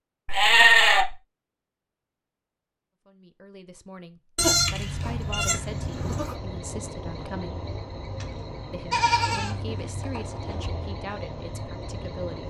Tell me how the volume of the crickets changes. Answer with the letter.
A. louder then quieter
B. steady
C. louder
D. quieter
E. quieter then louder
B.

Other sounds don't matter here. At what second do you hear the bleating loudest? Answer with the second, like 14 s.
1 s.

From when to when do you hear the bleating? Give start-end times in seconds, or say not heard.
0.2-1.1, 4.3-6.3, 8.9-10.6.